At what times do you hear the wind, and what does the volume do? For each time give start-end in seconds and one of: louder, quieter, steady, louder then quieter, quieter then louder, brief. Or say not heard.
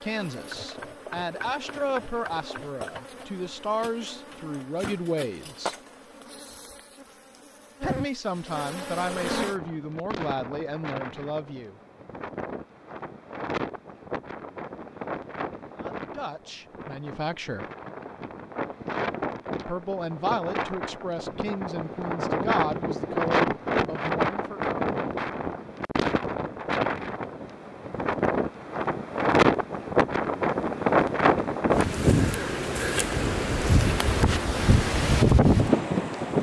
9.3-36.3 louder.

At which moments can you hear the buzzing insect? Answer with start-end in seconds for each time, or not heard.
0.0-9.6.